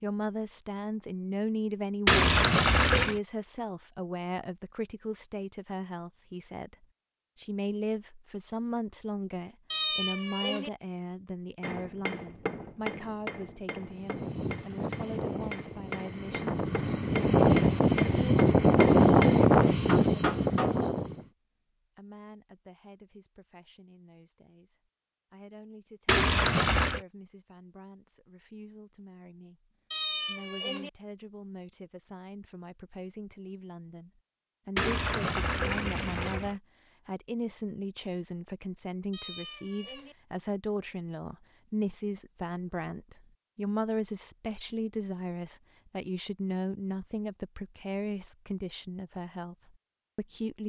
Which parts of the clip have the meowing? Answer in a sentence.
You can hear the meowing from 9.7 to 10.7 s, from 29.9 to 30.9 s and from 39.1 to 40.1 s.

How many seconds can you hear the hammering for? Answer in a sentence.
The hammering can be heard for 9 seconds in total.